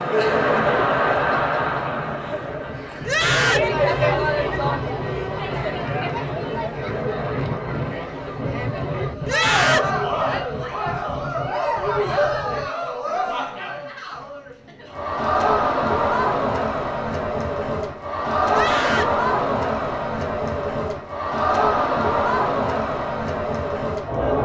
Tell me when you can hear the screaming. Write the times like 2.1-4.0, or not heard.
3.0-3.7, 9.2-9.9, 18.5-19.1.